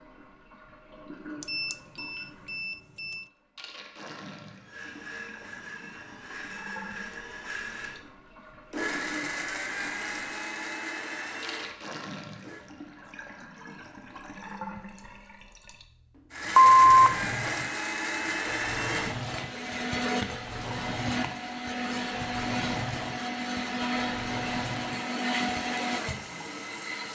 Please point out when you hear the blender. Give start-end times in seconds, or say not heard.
4.6-12.6, 16.3-27.1.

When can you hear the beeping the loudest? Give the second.
17 s.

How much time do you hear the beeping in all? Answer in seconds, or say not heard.
3 s.